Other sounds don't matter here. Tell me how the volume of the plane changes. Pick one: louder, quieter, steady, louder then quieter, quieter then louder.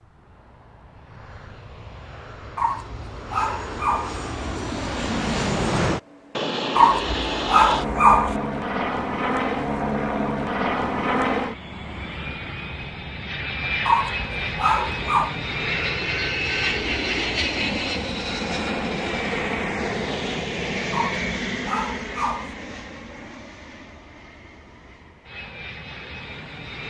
louder then quieter.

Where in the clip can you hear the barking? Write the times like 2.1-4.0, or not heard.
2.5-4.2, 6.8-8.4, 13.8-15.3, 20.9-22.6.